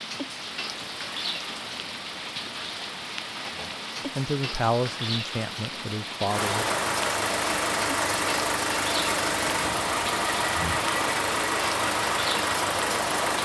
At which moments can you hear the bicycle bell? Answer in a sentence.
You can't hear the bicycle bell here.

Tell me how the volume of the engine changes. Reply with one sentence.
The volume of the engine goes up.